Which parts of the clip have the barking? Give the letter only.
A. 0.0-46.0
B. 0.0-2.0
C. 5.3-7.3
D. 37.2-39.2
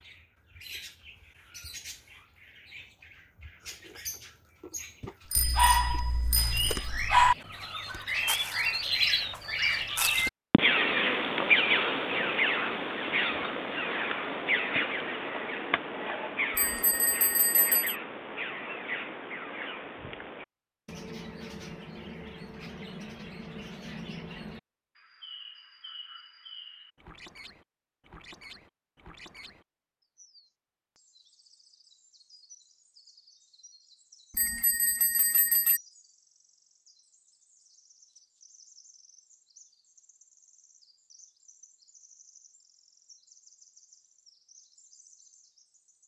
C.